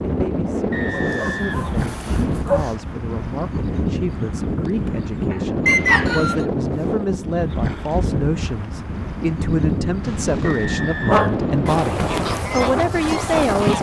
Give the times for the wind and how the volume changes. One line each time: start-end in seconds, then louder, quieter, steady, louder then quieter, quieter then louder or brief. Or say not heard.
0.0-13.7 steady.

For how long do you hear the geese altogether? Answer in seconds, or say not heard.
2 s.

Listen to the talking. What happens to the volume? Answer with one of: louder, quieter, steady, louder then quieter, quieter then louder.
louder.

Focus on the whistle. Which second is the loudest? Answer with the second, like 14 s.
6 s.